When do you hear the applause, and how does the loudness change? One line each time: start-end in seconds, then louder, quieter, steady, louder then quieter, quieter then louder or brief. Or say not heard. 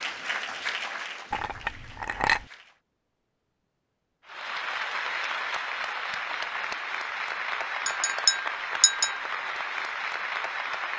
0.0-2.8 brief
4.2-10.9 steady.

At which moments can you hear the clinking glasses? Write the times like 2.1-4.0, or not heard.
1.3-2.5, 7.8-9.2.